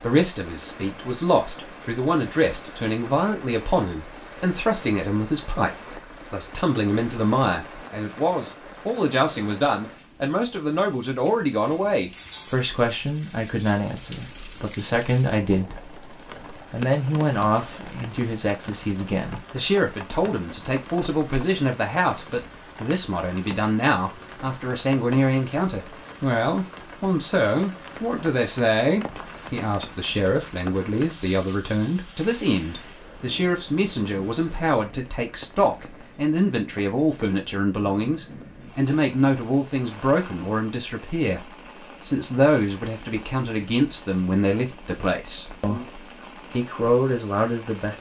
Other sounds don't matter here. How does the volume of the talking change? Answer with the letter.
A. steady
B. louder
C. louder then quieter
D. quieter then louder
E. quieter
A.